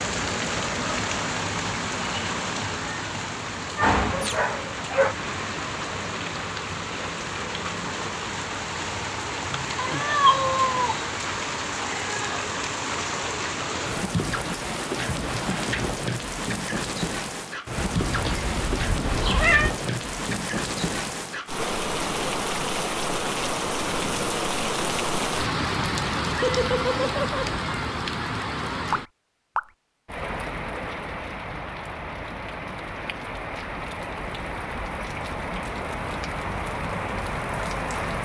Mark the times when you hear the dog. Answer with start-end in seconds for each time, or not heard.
3.8-5.2.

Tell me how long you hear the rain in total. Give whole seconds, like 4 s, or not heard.
38 s.